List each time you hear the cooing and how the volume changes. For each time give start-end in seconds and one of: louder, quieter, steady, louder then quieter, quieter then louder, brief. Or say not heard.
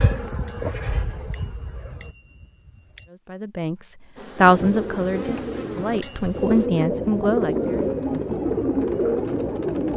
4.3-9.9 louder.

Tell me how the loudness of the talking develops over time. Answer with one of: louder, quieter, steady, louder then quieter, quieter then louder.
quieter then louder.